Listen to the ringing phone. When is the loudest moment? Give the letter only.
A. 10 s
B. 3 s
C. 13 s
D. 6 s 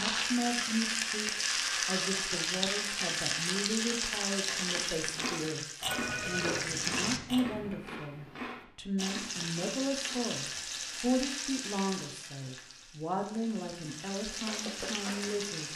D.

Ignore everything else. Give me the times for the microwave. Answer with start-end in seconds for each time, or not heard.
not heard.